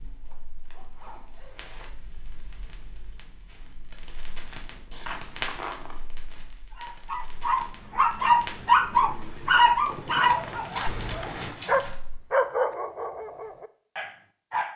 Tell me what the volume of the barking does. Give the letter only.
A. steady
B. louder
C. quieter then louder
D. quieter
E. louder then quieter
D.